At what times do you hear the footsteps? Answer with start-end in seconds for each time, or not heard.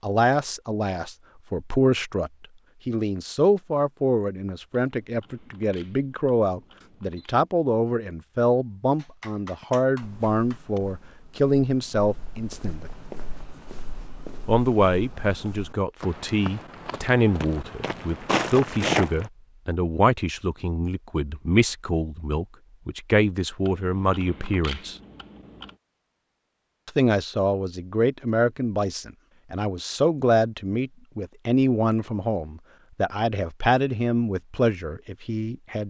9.6-19.3.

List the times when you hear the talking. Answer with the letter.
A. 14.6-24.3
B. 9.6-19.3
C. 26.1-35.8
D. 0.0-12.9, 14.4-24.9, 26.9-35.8
D.